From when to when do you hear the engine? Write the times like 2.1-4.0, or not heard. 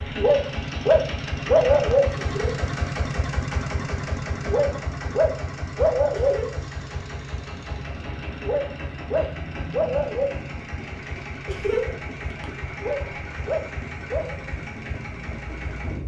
0.0-16.0.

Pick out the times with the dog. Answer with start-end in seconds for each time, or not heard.
0.1-2.1, 4.5-6.4, 8.4-10.3, 12.8-14.3.